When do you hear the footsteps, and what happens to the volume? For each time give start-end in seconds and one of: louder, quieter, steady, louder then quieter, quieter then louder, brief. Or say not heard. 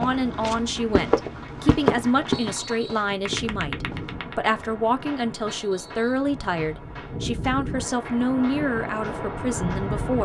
0.0-4.2 louder then quieter.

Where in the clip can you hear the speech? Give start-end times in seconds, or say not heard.
0.0-10.1.